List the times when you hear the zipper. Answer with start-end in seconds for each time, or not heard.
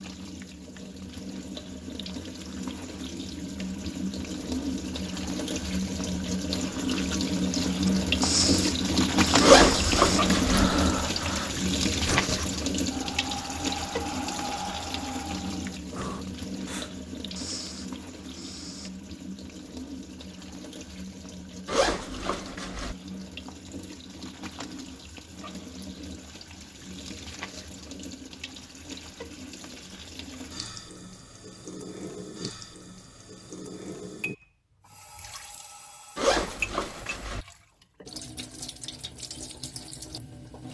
9.4-10.7, 21.6-22.9, 36.1-37.5.